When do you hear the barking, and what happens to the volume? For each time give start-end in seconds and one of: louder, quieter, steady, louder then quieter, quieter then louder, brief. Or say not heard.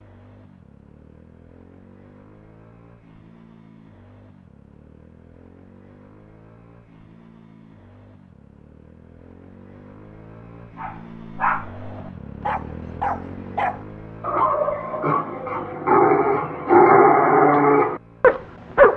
10.8-18.9 louder.